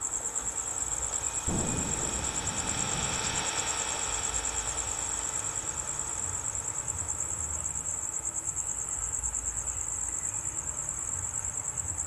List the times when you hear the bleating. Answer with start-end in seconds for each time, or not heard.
not heard.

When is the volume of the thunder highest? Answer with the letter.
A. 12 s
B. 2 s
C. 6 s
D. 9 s
B.